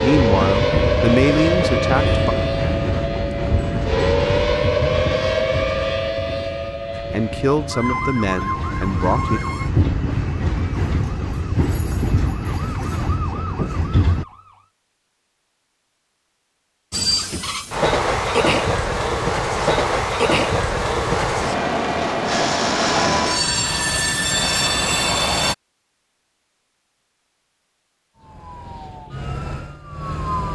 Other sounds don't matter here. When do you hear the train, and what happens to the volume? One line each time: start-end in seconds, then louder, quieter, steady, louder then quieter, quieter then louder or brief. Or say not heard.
0.0-14.2 quieter then louder
16.9-25.6 steady.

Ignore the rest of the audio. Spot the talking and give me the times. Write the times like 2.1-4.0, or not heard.
0.0-2.2, 7.1-9.4.